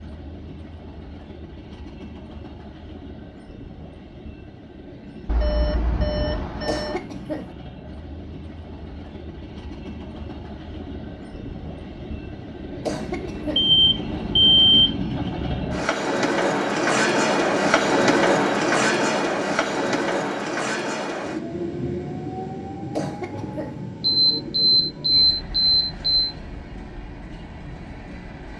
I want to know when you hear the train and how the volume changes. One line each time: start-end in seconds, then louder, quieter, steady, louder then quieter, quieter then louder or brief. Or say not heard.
0.0-28.5 louder then quieter.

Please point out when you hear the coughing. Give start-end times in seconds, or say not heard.
6.7-7.5, 12.8-13.7, 22.9-23.8.